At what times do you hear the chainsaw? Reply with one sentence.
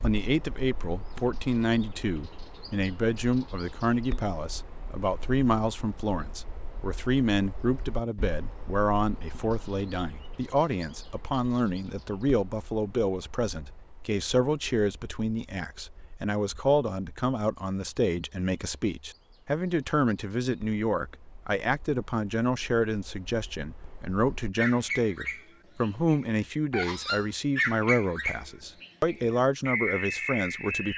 You can't hear the chainsaw here.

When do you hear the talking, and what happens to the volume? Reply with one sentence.
You can hear the talking from 0.0 to 30.9 s, at a steady volume.